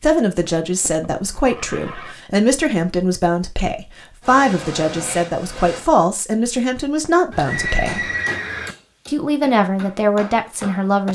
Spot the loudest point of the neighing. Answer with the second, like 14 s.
8 s.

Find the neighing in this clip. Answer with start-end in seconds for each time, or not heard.
0.7-2.1, 7.3-8.8.